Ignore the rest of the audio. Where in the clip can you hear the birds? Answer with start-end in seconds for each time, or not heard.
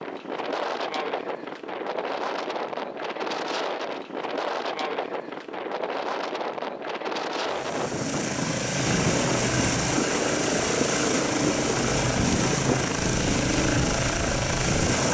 not heard.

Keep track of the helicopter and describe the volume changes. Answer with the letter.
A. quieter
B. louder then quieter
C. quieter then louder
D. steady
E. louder
D.